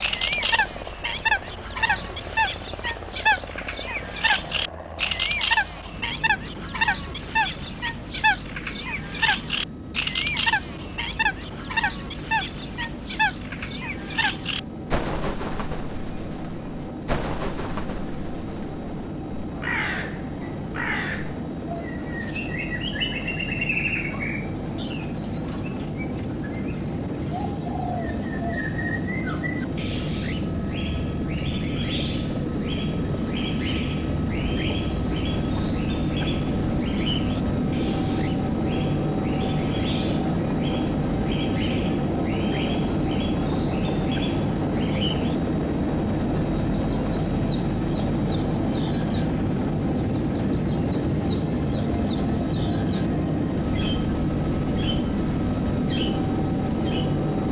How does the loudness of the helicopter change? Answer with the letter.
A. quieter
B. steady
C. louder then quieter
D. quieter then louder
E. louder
E.